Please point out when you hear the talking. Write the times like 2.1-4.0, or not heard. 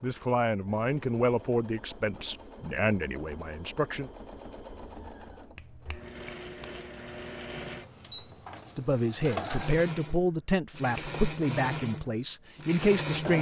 0.0-4.1, 8.8-13.3.